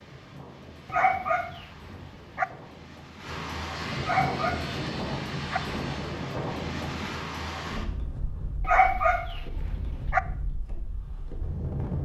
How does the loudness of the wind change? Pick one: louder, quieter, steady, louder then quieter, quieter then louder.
louder then quieter.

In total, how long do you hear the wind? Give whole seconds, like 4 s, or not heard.
12 s.